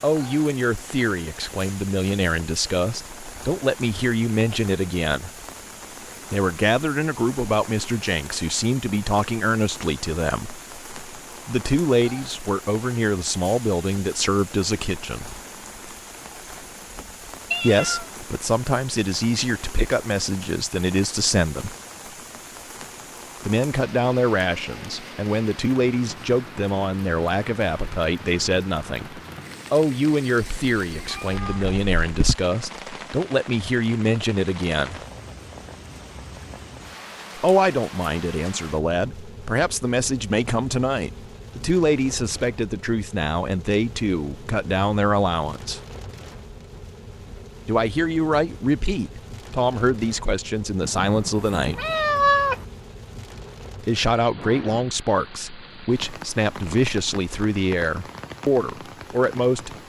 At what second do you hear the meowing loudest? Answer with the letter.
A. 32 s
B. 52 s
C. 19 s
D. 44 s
B.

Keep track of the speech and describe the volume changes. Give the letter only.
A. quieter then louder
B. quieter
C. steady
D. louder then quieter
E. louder
C.